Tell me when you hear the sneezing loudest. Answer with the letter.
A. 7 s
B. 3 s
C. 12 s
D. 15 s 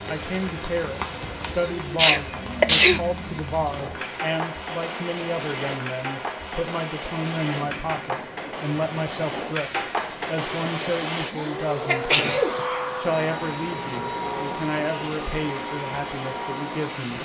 B.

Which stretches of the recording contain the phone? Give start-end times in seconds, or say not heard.
not heard.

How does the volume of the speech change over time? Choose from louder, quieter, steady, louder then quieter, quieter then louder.
steady.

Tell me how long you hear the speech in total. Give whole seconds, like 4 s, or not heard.
17 s.